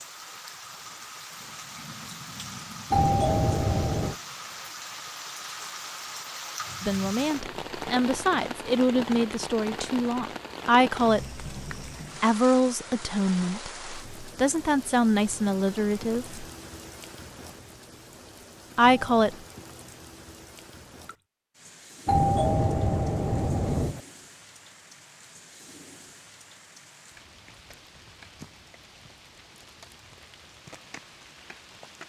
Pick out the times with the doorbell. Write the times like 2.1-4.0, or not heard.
2.9-4.2, 18.8-19.4, 22.1-24.0.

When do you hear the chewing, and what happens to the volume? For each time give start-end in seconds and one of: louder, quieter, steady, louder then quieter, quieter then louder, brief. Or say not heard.
not heard.